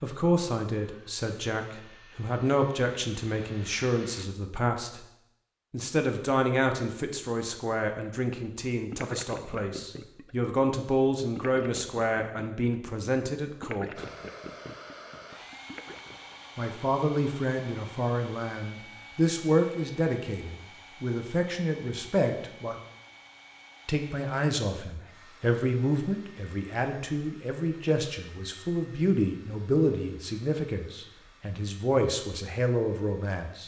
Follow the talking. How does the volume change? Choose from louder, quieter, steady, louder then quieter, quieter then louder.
steady.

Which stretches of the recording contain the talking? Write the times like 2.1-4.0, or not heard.
0.0-5.0, 5.7-14.0, 16.6-22.8, 23.9-33.6.